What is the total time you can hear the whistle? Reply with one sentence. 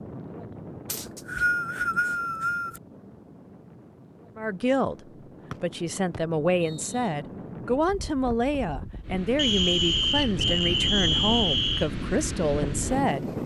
You can hear the whistle for 6 seconds altogether.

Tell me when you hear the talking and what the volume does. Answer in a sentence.
You can hear the talking briefly from 4.3 to 5.0 s; and from 5.6 to 13.2 s, at a steady volume.